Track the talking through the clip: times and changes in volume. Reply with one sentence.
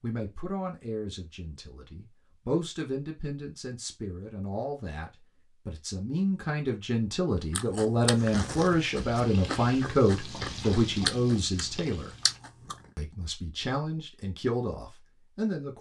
The talking can be heard from 0.0 to 12.1 s, getting louder; and briefly from 12.9 to 15.7 s.